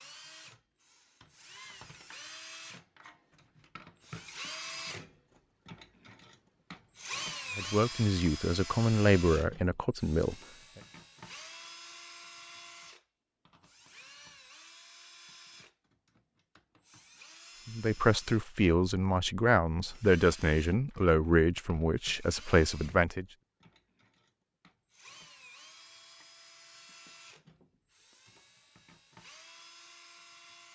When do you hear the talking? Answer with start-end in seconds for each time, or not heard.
7.5-10.3, 17.6-23.2.